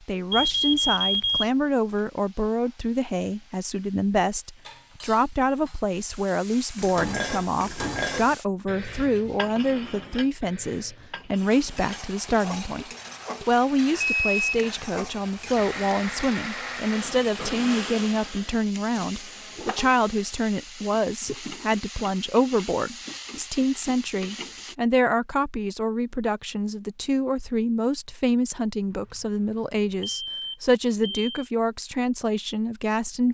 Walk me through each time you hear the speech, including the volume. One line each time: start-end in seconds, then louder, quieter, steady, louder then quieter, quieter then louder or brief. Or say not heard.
0.1-12.8 steady
13.4-33.2 steady.